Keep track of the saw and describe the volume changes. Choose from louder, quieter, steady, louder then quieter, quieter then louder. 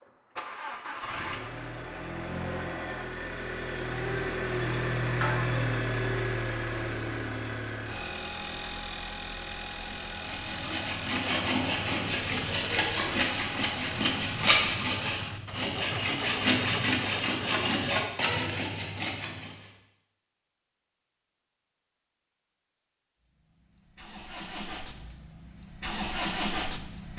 steady.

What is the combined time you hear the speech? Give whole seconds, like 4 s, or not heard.
not heard.